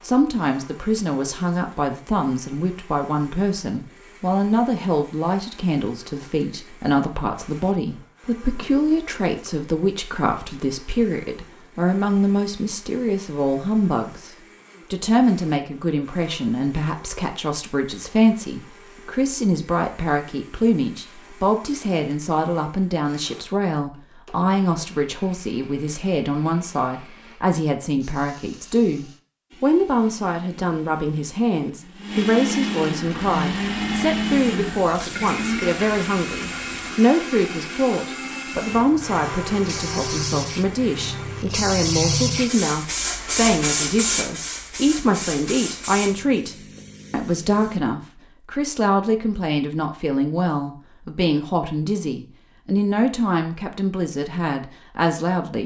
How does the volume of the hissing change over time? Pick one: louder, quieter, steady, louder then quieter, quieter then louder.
louder then quieter.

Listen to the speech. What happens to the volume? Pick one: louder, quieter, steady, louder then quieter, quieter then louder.
steady.